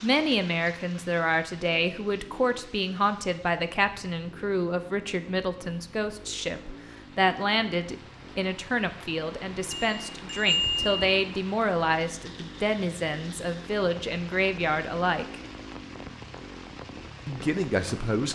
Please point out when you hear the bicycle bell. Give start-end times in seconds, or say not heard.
9.7-11.1.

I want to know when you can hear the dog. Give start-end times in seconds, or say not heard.
not heard.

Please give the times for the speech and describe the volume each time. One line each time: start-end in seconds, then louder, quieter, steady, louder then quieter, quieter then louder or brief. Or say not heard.
0.0-15.4 steady
17.2-18.3 brief.